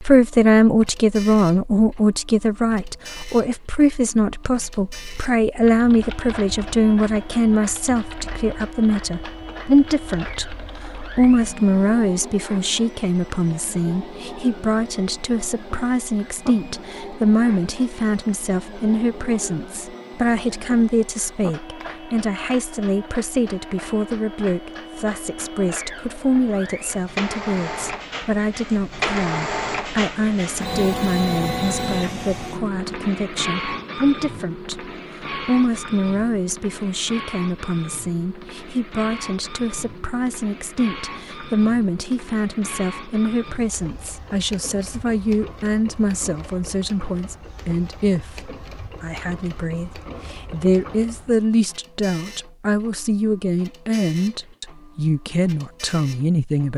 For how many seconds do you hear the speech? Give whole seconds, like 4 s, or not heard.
57 s.